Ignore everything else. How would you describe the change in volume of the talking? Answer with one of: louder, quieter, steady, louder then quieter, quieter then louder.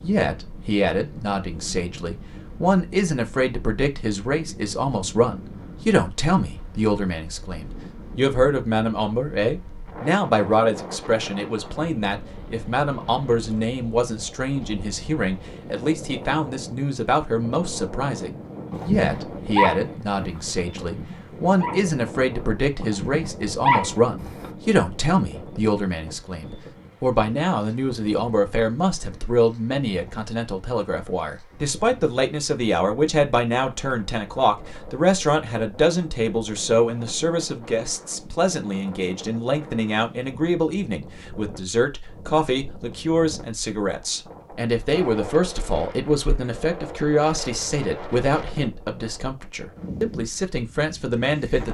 steady.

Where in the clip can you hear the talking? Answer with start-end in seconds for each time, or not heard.
0.0-51.6.